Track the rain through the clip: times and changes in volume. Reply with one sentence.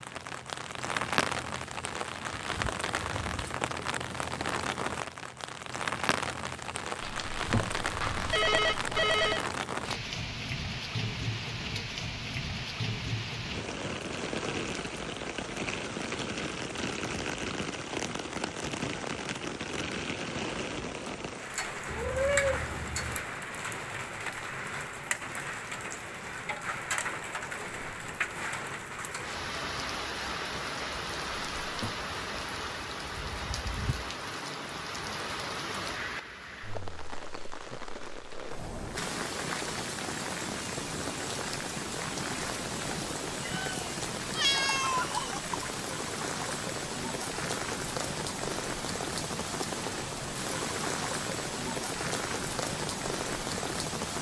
The rain can be heard from 0.0 to 54.1 s, at a steady volume.